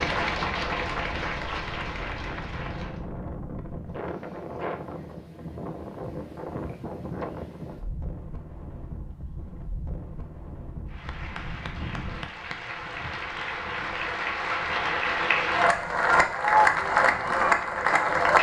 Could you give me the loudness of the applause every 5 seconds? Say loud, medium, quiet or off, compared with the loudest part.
medium, off, medium, loud.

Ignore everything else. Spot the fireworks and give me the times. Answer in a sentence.
The fireworks can't be heard in this clip.